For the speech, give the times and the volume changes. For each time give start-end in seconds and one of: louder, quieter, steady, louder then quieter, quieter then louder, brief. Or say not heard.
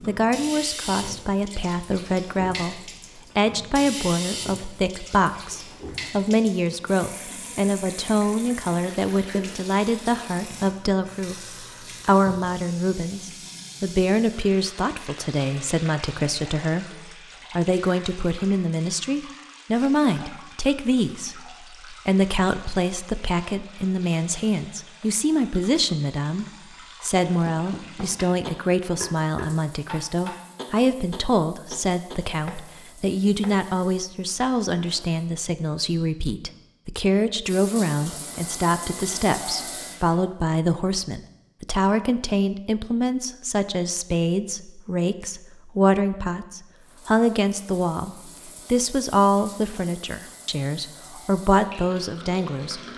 0.1-52.8 steady.